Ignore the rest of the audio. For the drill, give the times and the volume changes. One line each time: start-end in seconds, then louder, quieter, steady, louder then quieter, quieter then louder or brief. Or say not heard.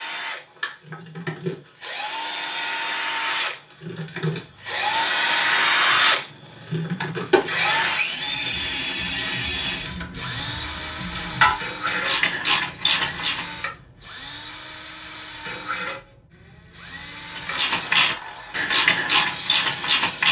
0.0-20.2 louder then quieter.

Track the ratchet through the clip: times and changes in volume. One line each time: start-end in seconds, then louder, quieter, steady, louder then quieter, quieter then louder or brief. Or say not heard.
8.1-13.4 louder
17.4-20.2 brief.